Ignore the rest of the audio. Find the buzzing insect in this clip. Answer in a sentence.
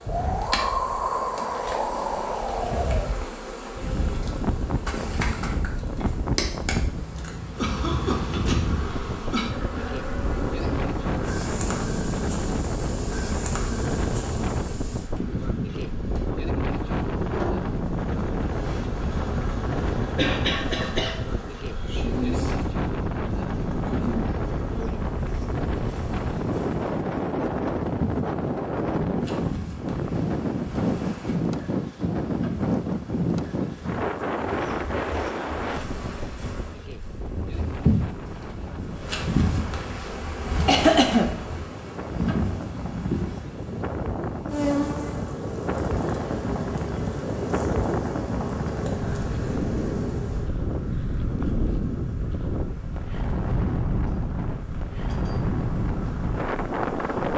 You can hear the buzzing insect from 0.0 to 57.3 s.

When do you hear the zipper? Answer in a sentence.
The zipper can't be heard in this clip.